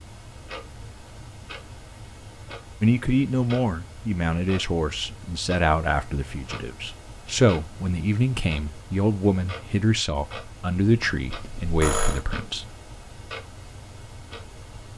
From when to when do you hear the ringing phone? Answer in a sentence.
You can hear the ringing phone from 11.2 to 12.2 s.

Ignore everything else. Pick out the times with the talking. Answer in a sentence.
The talking can be heard from 2.8 to 12.7 s.